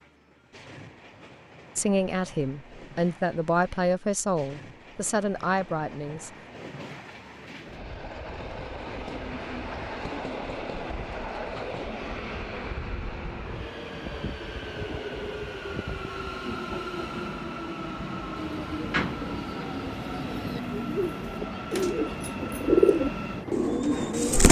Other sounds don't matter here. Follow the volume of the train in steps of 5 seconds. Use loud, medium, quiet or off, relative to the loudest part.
quiet, medium, loud, loud, loud.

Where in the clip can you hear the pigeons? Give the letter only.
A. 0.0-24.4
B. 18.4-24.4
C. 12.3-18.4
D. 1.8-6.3
B.